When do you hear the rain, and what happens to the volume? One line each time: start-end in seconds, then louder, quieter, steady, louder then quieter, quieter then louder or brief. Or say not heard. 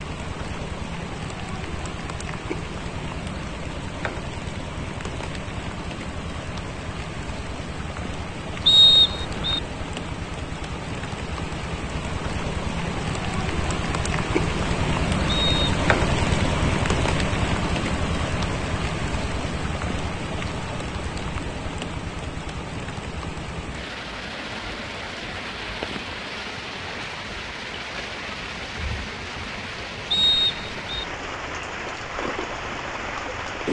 0.0-33.6 louder then quieter.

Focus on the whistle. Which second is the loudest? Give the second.
9 s.